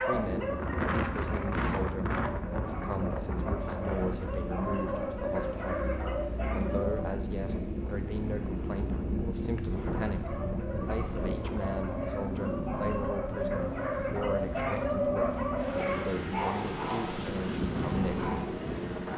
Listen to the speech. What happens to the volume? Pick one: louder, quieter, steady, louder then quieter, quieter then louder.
steady.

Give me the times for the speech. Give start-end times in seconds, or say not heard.
0.0-5.7, 6.5-18.3.